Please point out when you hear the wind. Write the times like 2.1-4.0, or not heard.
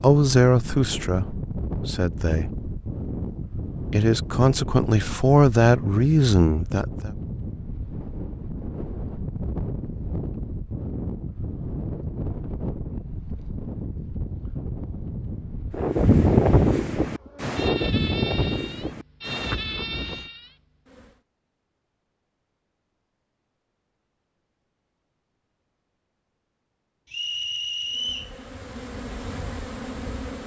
0.0-20.2.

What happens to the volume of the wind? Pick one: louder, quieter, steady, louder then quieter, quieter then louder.
louder.